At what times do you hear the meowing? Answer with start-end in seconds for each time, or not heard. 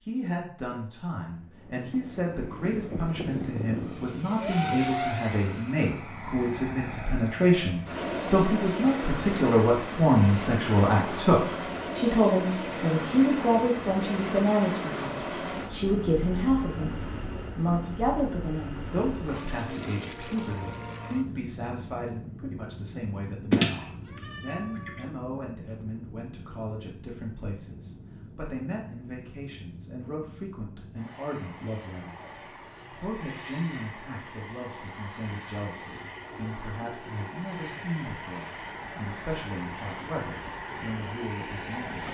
23.5-25.0.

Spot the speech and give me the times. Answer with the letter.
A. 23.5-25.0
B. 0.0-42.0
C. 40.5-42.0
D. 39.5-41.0
B.